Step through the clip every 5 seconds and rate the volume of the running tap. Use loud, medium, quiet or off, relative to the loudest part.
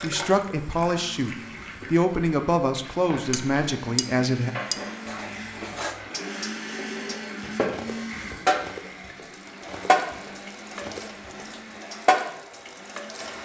medium, loud, loud.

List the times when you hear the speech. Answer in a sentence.
You can hear the speech from 0.0 to 4.5 s.